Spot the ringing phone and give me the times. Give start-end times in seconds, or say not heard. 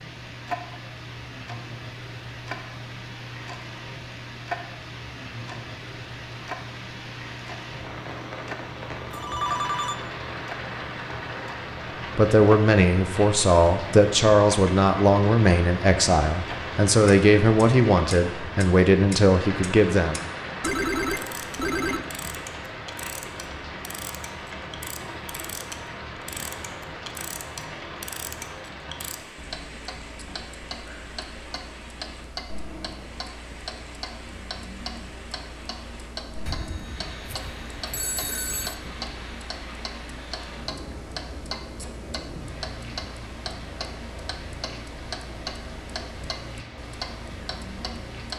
9.1-9.9, 20.6-22.0, 36.5-38.8.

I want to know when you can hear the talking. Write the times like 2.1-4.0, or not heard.
12.2-20.2.